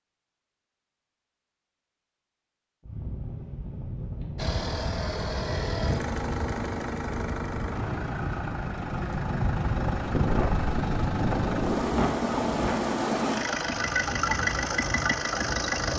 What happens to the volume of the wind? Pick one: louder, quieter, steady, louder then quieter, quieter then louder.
louder then quieter.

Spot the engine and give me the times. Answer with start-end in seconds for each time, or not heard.
4.3-15.9.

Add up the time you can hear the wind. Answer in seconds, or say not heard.
13 s.